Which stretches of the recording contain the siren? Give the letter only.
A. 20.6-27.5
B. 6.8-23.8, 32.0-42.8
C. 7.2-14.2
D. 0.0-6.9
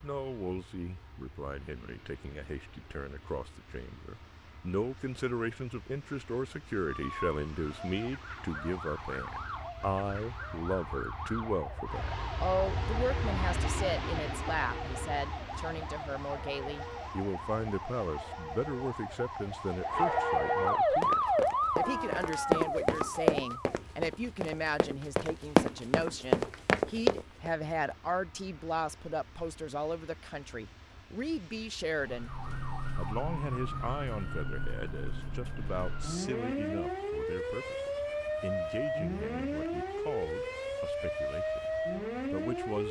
B.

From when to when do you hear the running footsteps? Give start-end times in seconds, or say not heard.
20.6-27.5.